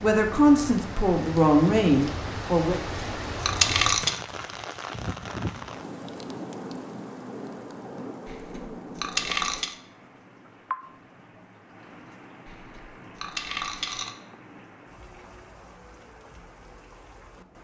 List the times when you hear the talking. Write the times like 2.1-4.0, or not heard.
0.0-2.8.